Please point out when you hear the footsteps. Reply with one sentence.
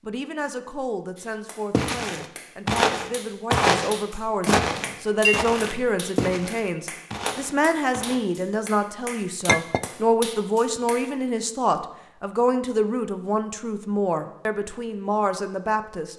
You can hear the footsteps from 1.7 to 8.2 s.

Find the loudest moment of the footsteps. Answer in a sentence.
The loudest moment of the footsteps is at 4 seconds.